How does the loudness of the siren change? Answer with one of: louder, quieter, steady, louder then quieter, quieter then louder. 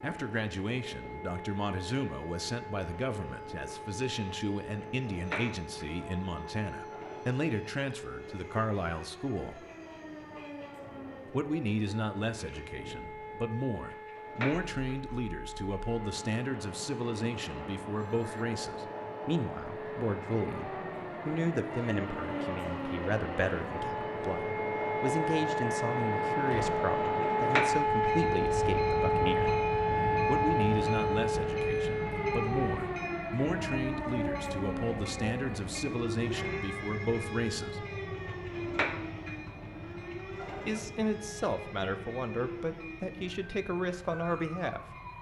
louder then quieter.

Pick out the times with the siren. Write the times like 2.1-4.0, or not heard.
0.0-45.1.